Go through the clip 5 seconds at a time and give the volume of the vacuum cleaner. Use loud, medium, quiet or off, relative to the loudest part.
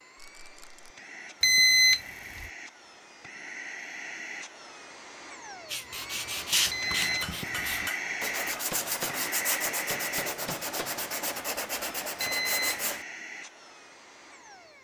medium, loud, medium.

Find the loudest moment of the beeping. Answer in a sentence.
The loudest moment of the beeping is at 2 seconds.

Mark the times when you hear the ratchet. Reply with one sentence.
You can't hear the ratchet here.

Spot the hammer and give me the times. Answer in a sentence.
The hammer can be heard from 7.0 to 11.1 s.